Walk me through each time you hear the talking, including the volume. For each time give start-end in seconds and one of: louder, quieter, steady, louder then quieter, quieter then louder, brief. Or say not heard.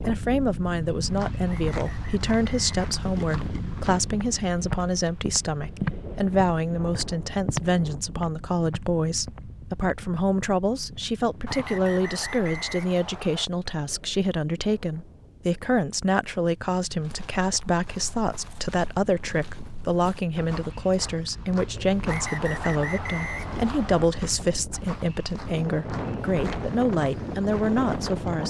0.1-28.4 steady.